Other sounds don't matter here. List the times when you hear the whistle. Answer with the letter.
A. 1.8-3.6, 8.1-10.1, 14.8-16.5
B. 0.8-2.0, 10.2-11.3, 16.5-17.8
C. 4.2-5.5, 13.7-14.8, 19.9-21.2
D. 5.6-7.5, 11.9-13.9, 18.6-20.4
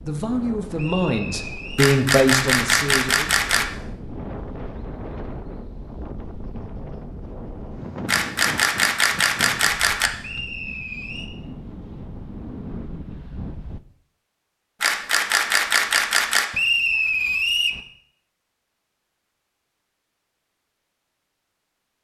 B.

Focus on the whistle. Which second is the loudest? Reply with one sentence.
The loudest moment of the whistle is at 17 seconds.